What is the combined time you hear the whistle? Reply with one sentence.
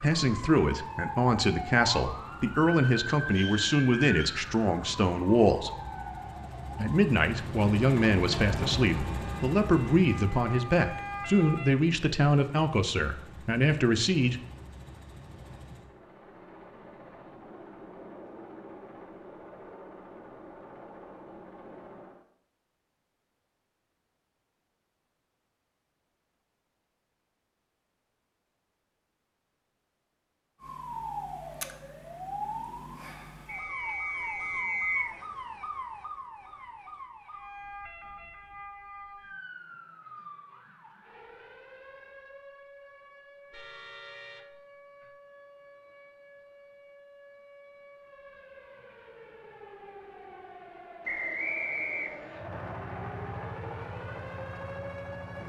You can hear the whistle for 4 seconds altogether.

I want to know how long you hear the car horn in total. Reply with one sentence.
You can hear the car horn for 2 seconds altogether.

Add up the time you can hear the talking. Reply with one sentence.
You can hear the talking for 13 seconds altogether.